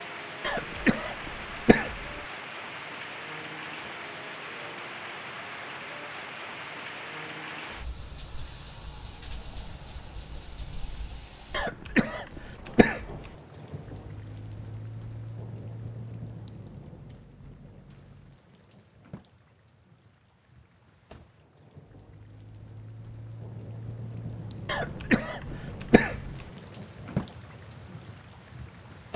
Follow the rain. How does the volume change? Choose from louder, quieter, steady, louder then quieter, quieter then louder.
quieter then louder.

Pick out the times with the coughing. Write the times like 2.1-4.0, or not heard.
0.4-2.2, 11.5-13.3, 24.6-26.4.